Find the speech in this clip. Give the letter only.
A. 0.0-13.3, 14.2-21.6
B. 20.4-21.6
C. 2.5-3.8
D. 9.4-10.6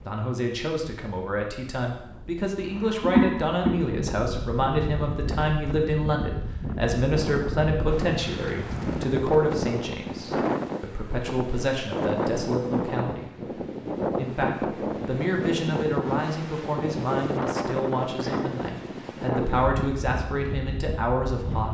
A.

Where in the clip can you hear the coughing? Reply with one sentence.
You can hear the coughing from 2.5 to 3.8 s.